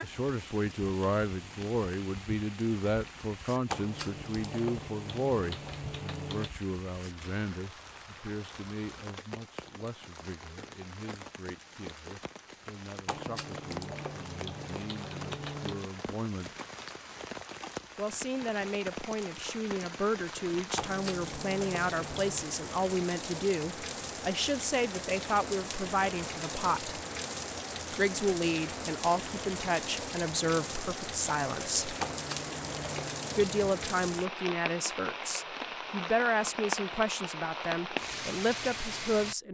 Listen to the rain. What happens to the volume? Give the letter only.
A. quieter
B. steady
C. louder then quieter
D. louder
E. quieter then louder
D.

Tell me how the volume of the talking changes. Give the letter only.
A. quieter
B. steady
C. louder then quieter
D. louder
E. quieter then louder
E.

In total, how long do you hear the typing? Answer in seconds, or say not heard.
9 s.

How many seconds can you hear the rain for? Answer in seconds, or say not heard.
39 s.